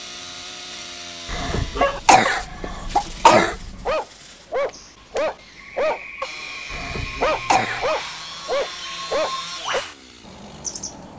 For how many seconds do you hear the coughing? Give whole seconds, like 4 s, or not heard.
4 s.